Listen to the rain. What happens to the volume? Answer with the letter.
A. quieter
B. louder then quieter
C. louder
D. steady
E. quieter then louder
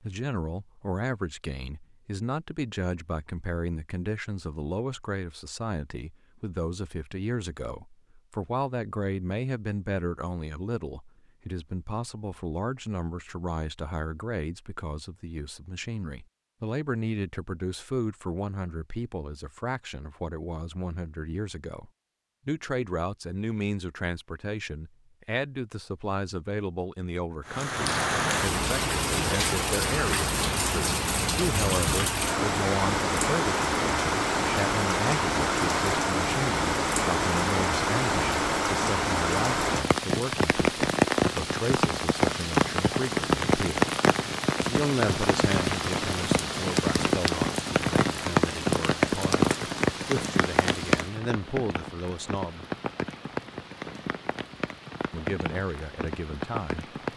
A.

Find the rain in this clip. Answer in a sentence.
You can hear the rain from 27.4 to 57.1 s.